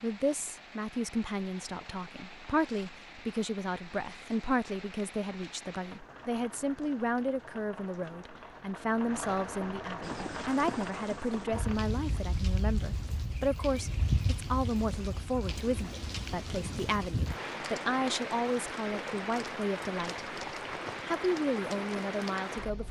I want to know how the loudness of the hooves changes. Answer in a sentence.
The loudness of the hooves goes up, then down.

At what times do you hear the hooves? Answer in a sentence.
The hooves can be heard from 10.0 to 17.4 s.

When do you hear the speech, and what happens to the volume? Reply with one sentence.
You can hear the speech from 0.0 to 20.4 s, at a steady volume; and briefly from 21.1 to 22.8 s.